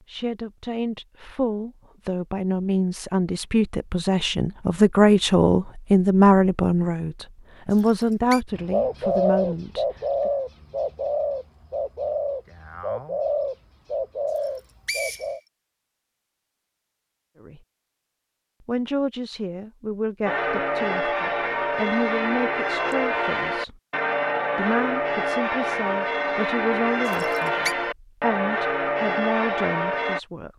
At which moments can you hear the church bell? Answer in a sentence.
The church bell can be heard from 20.2 to 30.2 s.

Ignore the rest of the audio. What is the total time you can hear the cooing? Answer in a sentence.
You can hear the cooing for 7 seconds altogether.